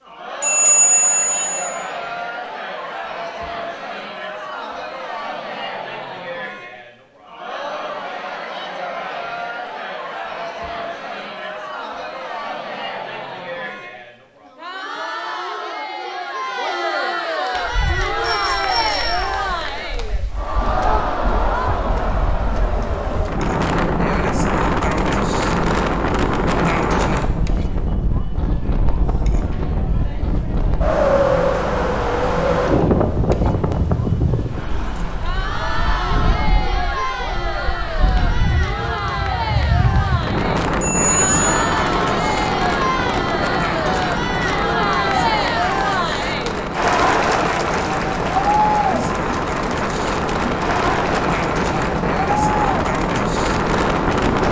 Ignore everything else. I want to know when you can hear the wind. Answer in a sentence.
You can hear the wind from 17.6 to 54.4 s.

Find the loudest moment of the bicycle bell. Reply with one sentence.
The loudest moment of the bicycle bell is at 1 second.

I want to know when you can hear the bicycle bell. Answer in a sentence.
The bicycle bell can be heard from 0.4 to 1.7 s, from 18.2 to 19.3 s and from 40.8 to 41.5 s.